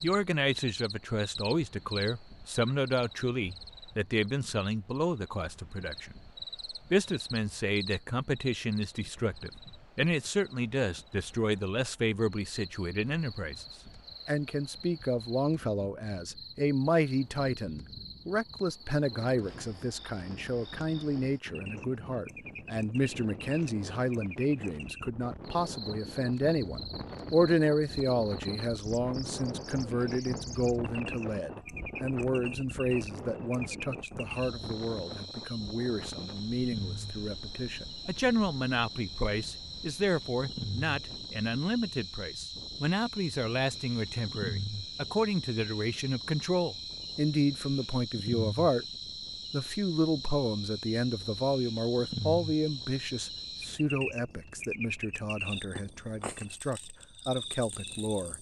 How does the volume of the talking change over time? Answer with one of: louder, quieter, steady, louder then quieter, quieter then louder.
steady.